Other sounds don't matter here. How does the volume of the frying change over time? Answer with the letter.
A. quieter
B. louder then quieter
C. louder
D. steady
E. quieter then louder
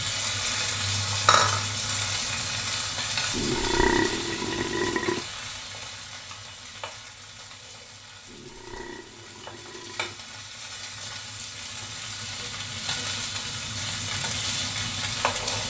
E.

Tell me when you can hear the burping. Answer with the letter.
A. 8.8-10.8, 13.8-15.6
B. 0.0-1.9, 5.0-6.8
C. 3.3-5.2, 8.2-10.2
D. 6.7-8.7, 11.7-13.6
C.